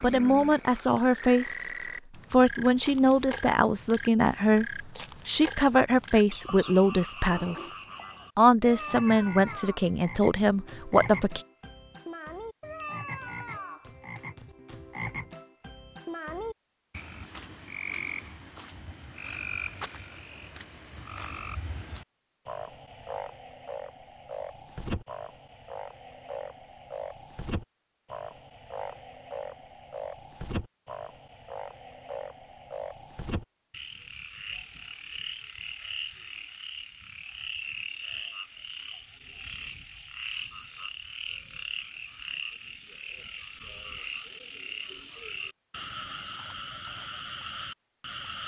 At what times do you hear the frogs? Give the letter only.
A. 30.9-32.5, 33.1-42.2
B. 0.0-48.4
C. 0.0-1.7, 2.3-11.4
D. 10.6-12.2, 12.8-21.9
B.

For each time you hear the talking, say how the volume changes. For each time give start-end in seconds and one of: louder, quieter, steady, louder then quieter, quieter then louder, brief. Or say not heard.
0.0-1.7 brief
2.3-11.4 steady.